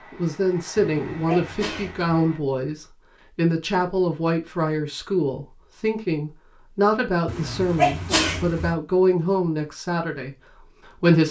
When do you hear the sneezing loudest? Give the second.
8 s.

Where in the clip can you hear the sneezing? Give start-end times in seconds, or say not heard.
0.8-2.1, 7.2-8.8.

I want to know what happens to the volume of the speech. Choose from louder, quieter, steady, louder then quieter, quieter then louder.
steady.